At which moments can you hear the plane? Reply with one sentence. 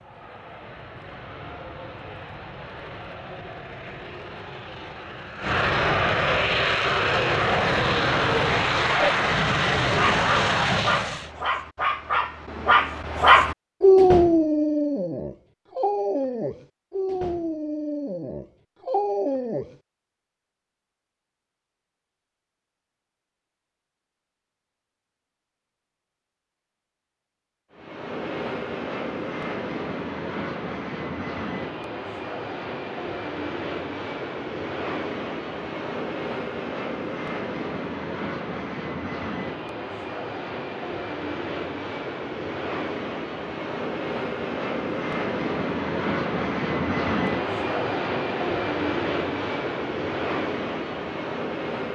The plane can be heard from 0.0 to 11.3 s and from 27.7 to 51.9 s.